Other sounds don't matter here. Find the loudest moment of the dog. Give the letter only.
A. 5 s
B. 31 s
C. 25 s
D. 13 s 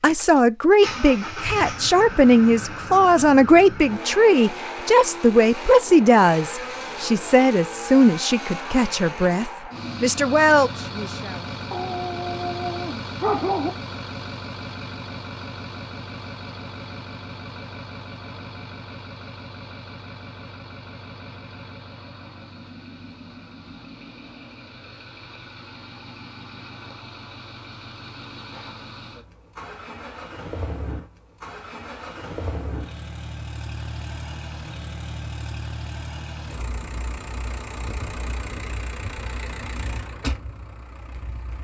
D.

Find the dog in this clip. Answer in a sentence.
You can hear the dog from 11.7 to 13.7 s.